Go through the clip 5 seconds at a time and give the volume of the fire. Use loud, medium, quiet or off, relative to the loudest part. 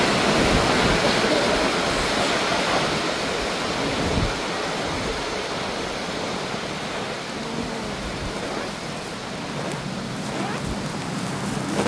off, medium, loud.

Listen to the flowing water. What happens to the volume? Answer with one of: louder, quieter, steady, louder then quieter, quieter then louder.
quieter.